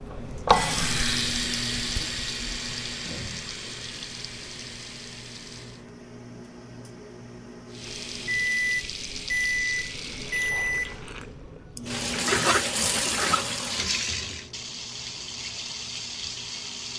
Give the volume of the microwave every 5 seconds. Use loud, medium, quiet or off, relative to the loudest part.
medium, loud, loud, quiet.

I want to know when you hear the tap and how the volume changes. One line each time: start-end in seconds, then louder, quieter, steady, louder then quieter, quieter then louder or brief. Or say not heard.
0.0-5.8 quieter
7.7-16.9 louder then quieter.